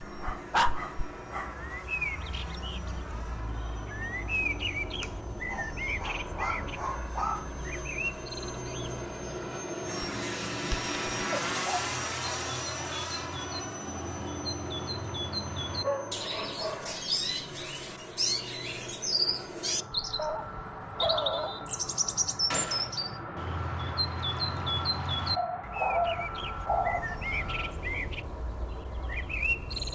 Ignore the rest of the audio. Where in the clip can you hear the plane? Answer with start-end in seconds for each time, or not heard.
0.0-29.8.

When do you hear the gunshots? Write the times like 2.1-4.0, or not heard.
22.5-23.5.